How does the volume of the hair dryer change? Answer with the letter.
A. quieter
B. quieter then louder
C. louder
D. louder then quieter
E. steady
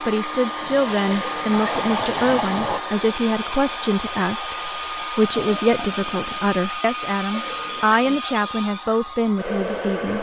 E.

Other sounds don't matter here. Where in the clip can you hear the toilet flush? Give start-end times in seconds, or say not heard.
0.6-2.8, 5.2-6.6.